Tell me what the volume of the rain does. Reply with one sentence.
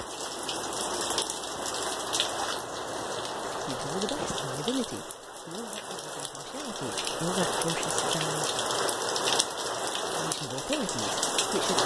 The volume of the rain goes down, then up.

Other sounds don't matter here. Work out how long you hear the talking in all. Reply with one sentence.
You can hear the talking for 7 seconds altogether.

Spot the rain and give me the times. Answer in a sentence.
You can hear the rain from 0.0 to 11.8 s.